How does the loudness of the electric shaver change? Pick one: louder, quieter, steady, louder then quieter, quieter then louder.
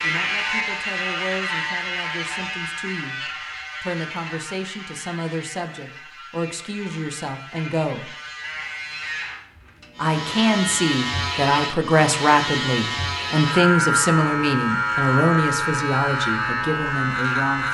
quieter then louder.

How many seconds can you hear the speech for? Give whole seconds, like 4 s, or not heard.
16 s.